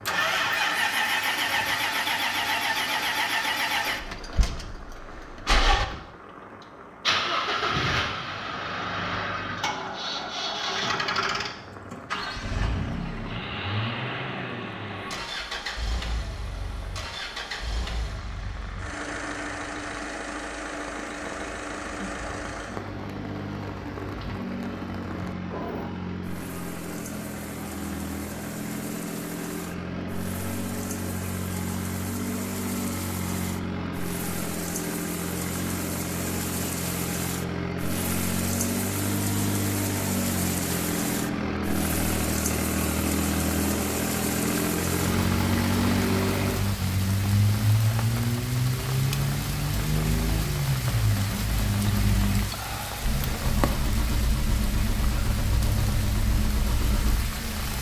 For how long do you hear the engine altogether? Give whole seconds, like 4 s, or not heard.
58 s.